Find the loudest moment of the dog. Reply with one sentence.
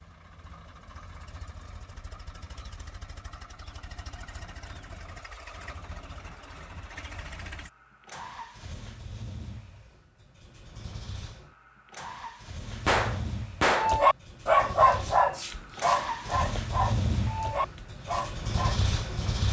The loudest moment of the dog is at 15 seconds.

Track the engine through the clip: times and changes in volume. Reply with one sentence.
The engine can be heard from 0.0 to 19.4 s, getting louder.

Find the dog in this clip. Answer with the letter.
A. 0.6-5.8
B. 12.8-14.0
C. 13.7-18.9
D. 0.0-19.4
C.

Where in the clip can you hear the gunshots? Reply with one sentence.
You can hear the gunshots from 12.8 to 14.0 s.